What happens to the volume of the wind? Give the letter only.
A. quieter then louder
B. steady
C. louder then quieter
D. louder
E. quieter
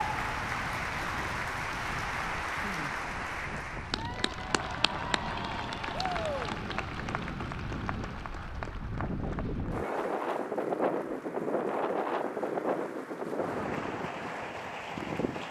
D.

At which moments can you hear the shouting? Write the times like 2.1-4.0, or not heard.
5.9-6.5.